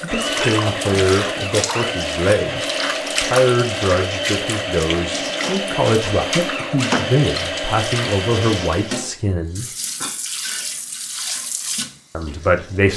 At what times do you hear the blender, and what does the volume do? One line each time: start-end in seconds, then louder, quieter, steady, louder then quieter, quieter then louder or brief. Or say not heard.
0.0-9.1 steady.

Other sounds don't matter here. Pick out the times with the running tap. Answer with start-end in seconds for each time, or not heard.
0.0-12.9.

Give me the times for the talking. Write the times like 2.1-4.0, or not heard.
0.0-9.7, 12.2-12.9.